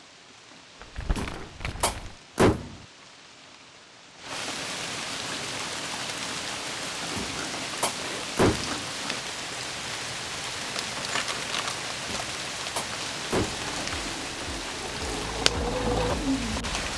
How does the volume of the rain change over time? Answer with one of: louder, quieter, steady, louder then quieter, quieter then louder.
louder.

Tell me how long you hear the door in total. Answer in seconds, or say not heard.
5 s.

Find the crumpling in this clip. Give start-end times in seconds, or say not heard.
0.8-2.1, 10.9-11.8.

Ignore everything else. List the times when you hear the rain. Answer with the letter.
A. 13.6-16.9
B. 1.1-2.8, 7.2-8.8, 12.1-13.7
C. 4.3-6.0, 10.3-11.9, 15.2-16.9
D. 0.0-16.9
D.